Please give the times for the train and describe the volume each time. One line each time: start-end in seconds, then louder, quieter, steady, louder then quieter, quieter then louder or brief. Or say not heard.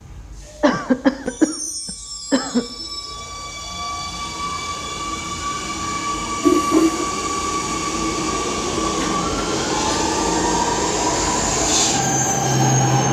0.0-13.0 louder.